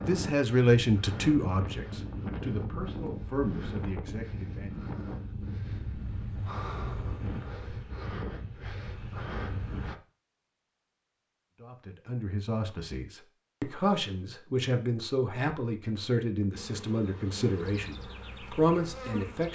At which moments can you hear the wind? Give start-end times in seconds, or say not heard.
0.0-9.9.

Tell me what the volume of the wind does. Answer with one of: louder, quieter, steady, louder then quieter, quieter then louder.
steady.